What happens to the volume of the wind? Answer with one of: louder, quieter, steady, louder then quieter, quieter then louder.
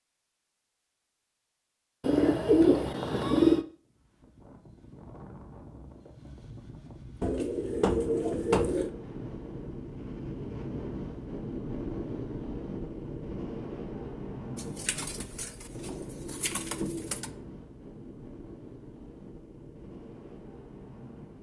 louder then quieter.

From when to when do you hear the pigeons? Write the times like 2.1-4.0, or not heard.
2.0-3.6, 7.2-8.9, 14.6-17.3.